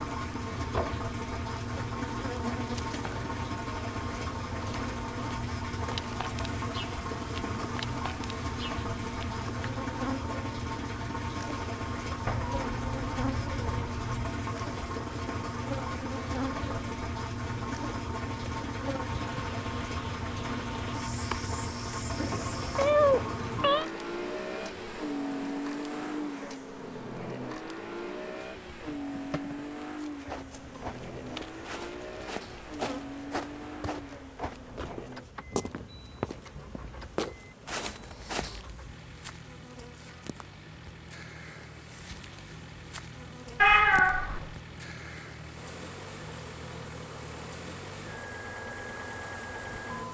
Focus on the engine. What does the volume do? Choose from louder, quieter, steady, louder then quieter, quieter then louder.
quieter.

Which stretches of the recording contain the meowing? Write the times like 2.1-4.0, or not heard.
12.2-14.3, 22.2-23.9, 43.6-44.5.